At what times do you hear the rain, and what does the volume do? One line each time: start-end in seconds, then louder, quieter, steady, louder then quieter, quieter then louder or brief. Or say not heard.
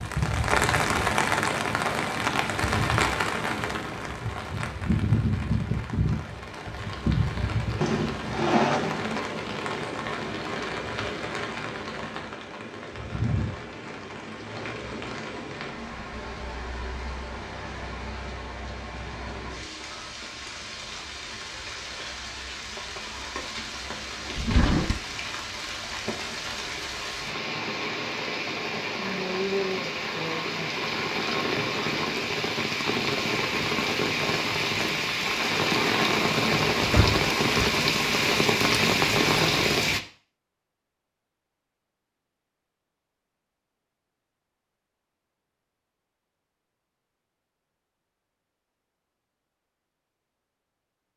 0.0-40.0 quieter then louder.